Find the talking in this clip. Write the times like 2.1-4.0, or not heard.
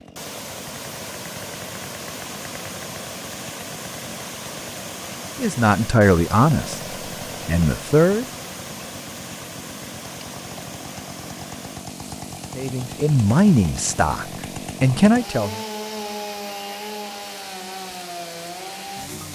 5.3-6.8, 7.5-8.2, 12.6-15.6.